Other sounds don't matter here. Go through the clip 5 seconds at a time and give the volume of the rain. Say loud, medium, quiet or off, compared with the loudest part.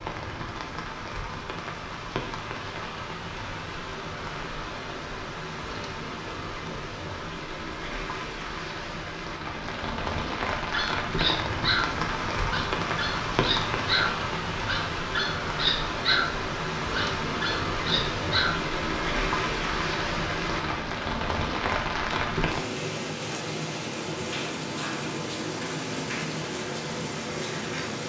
medium, medium, loud, loud, loud, loud.